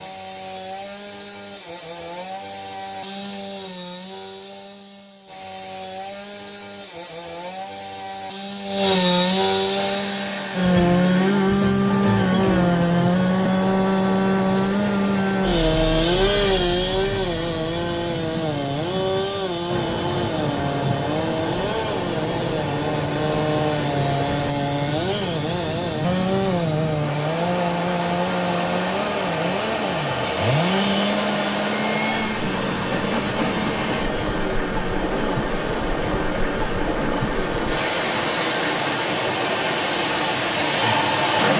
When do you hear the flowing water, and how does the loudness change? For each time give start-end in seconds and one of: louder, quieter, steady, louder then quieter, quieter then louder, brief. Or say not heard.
9.7-41.5 louder.